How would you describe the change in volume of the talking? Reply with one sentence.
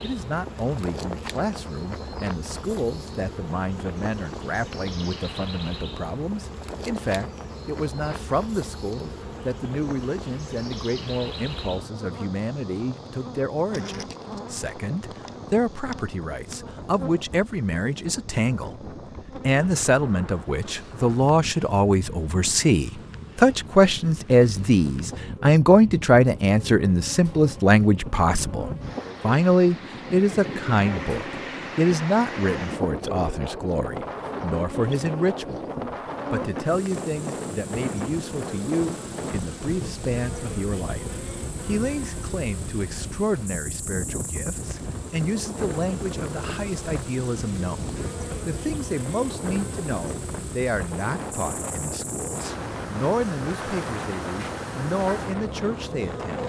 The loudness of the talking goes up, then down.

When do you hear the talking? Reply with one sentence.
You can hear the talking from 0.0 to 18.7 s, from 19.4 to 35.6 s and from 36.3 to 56.4 s.